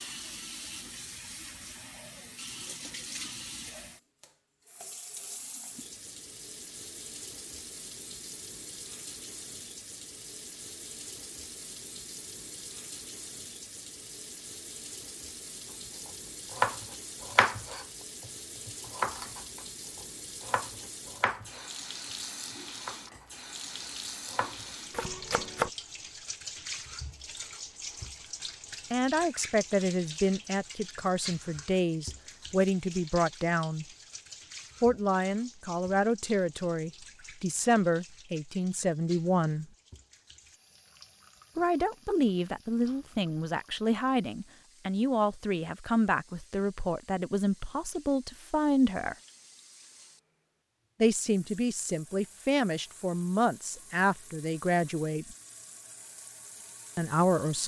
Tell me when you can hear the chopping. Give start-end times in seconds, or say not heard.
16.5-19.6, 20.4-23.4, 24.2-25.7.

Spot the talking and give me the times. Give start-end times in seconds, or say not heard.
28.9-33.9, 34.8-39.6, 41.5-49.1, 51.0-55.4, 57.0-57.6.